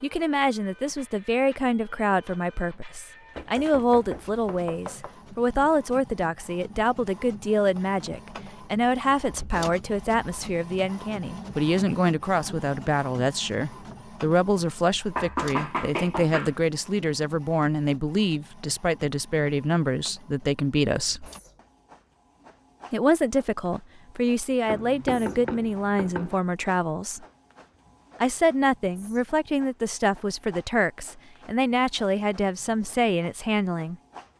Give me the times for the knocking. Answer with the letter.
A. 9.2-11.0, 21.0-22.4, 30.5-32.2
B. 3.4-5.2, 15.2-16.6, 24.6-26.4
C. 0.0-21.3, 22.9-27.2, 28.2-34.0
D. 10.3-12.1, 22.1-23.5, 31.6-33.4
B.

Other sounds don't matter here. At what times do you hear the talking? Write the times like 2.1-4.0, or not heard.
0.0-21.3, 22.9-27.2, 28.2-34.0.